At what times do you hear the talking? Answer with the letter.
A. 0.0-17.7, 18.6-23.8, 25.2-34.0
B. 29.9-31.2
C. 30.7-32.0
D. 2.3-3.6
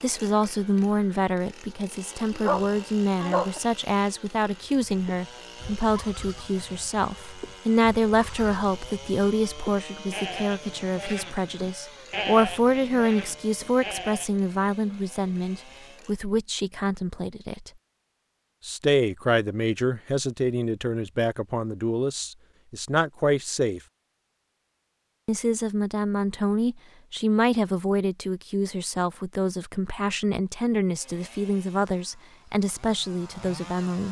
A.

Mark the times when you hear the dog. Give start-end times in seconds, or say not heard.
2.3-3.6.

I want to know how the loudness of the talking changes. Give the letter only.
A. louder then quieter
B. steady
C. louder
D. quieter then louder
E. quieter
B.